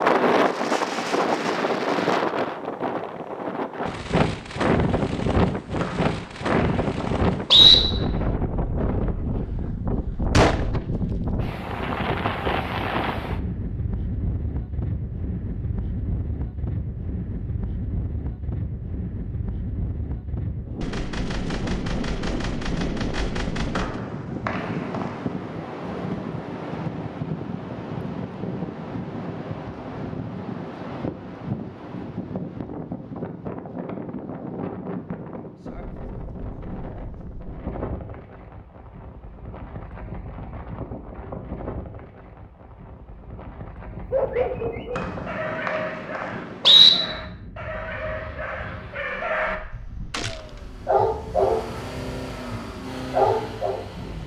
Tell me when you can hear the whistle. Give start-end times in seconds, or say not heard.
5.8-7.8, 23.8-25.1, 45.0-46.9.